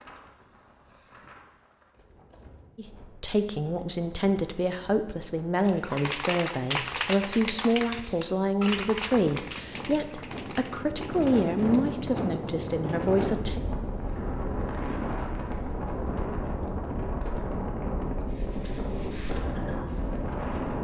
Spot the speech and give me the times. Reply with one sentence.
The speech can be heard from 2.8 to 13.6 s.